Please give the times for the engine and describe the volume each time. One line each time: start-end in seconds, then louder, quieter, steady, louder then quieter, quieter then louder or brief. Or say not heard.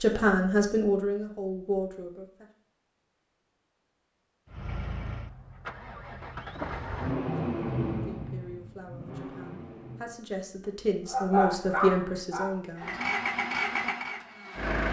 4.5-10.2 louder then quieter
12.8-14.8 brief.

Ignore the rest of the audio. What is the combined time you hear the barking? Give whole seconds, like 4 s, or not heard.
2 s.